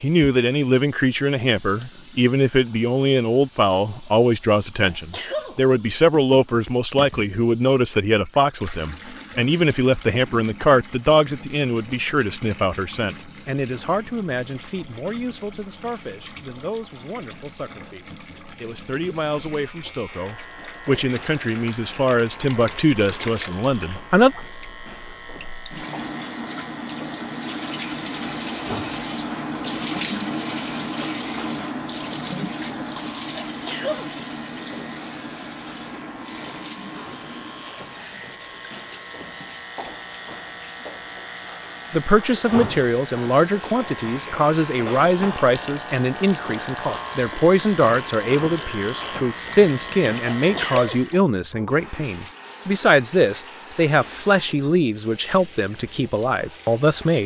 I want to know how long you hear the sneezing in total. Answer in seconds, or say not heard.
2 s.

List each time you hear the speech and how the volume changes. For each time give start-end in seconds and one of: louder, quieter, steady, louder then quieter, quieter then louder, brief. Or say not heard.
0.0-24.4 quieter then louder
41.9-57.2 steady.